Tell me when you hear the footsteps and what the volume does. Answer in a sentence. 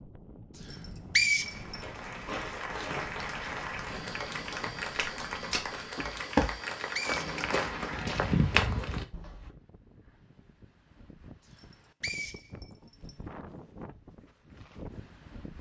The footsteps can be heard from 1.4 to 9.5 s, getting louder.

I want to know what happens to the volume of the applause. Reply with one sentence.
The volume of the applause stays about the same.